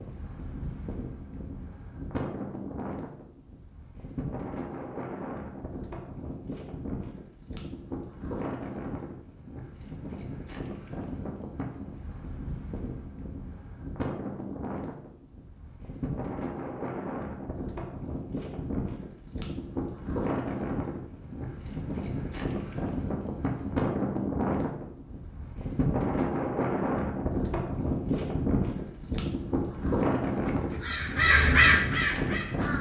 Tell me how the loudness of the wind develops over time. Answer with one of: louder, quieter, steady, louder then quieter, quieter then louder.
louder.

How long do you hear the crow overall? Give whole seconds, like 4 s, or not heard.
2 s.